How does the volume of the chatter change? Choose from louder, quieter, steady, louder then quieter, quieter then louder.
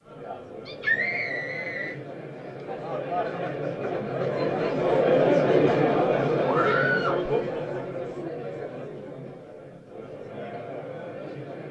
louder then quieter.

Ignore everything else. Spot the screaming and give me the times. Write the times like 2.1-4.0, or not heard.
0.7-1.9, 6.5-7.2.